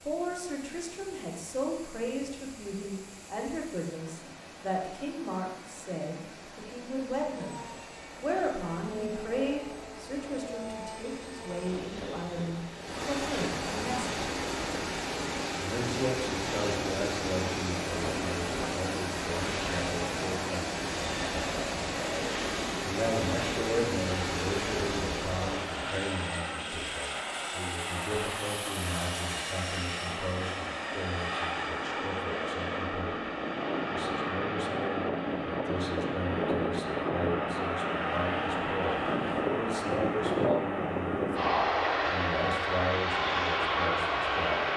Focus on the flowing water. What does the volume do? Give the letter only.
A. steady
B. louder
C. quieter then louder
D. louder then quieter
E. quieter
B.